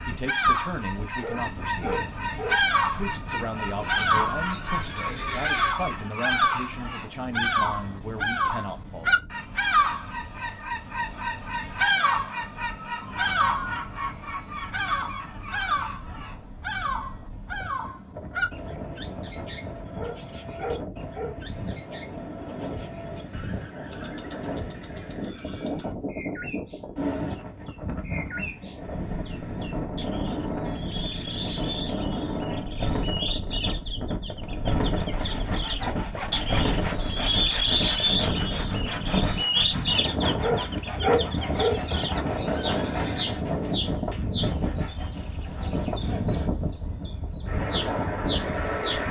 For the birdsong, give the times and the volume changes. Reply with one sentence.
You can hear the birdsong from 0.0 to 49.0 s, getting quieter then louder.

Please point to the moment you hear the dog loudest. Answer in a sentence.
The volume of the dog peaks at 41 seconds.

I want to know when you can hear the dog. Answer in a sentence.
You can hear the dog from 1.2 to 2.5 s, from 19.9 to 21.4 s and from 40.4 to 41.8 s.